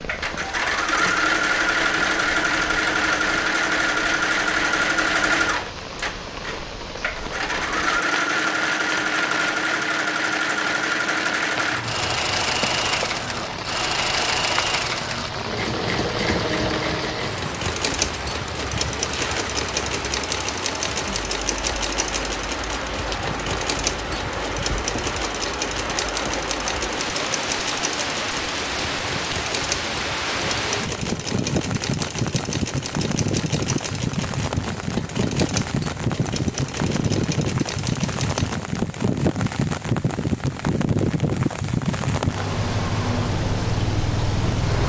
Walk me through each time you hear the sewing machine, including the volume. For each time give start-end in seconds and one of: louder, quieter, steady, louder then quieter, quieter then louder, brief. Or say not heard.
0.0-38.6 quieter.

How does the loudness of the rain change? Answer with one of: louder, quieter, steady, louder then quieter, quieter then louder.
louder.